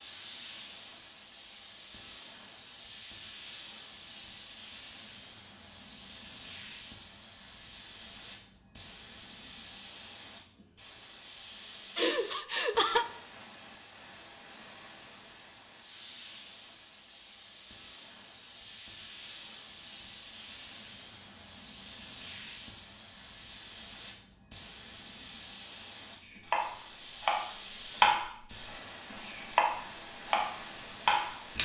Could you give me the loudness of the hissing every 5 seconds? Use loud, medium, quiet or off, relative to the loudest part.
medium, medium, medium, medium, medium, medium, loud.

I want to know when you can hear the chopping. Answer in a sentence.
You can hear the chopping from 26.2 to 28.2 s and from 29.2 to 31.3 s.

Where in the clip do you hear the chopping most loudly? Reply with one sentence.
The loudest moment of the chopping is at 28 seconds.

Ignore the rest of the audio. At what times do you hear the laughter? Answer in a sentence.
You can hear the laughter from 11.9 to 13.1 s.